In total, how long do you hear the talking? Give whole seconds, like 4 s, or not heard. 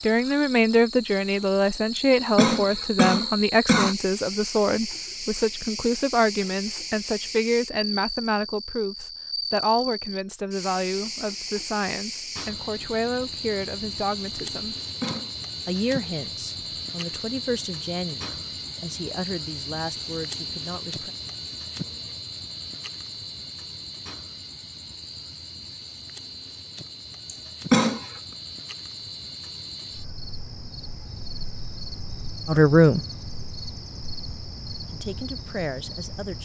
22 s.